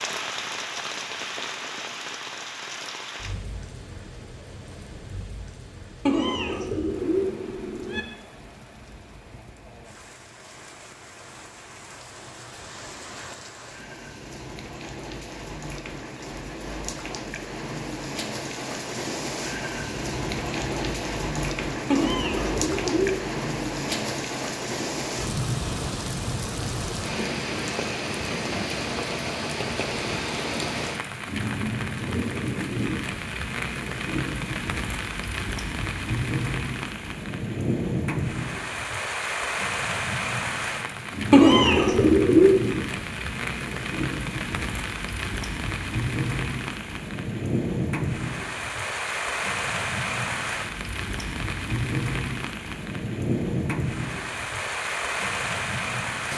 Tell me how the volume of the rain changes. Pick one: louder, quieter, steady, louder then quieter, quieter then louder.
louder.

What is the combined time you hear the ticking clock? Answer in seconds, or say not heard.
not heard.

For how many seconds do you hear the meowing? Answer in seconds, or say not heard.
5 s.